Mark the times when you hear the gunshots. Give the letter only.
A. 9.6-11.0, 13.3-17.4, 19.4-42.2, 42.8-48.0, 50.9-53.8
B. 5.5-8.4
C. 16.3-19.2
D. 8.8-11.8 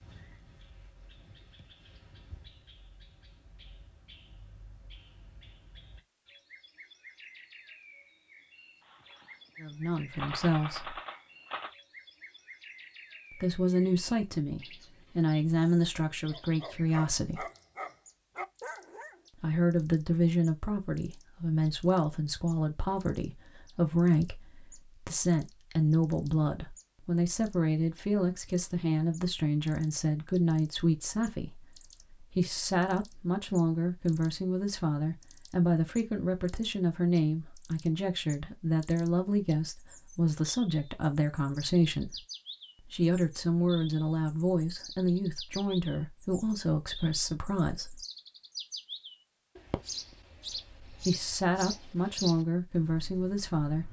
D.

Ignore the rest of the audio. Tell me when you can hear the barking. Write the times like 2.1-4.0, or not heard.
16.3-19.2.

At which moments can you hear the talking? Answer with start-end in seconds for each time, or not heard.
9.6-11.0, 13.3-17.4, 19.4-42.2, 42.8-48.0, 50.9-53.8.